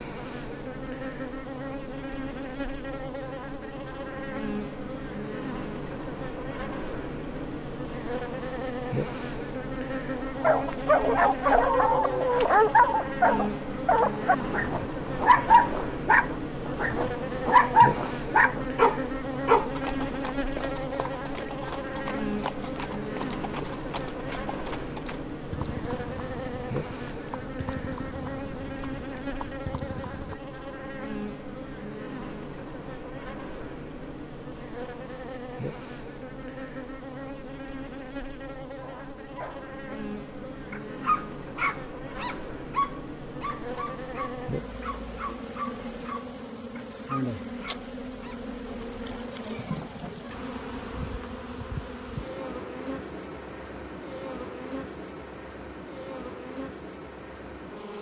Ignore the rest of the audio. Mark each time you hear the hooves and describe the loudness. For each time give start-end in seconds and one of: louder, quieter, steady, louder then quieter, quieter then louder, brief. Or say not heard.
19.7-30.4 steady.